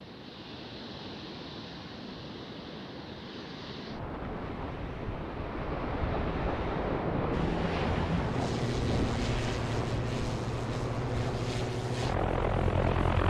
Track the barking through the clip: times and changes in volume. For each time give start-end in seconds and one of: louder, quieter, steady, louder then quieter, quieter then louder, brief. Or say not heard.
not heard.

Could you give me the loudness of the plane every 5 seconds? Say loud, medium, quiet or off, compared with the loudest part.
off, loud, loud.